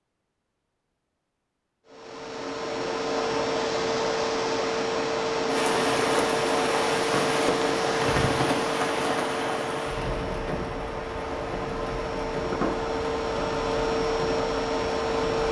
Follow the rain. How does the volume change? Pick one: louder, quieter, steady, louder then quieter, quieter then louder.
quieter.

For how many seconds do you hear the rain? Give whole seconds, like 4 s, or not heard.
10 s.